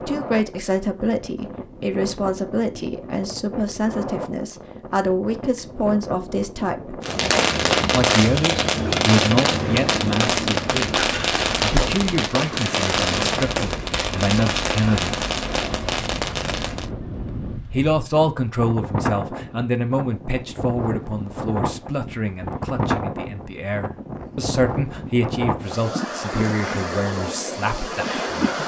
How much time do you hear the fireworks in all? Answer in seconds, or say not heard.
10 s.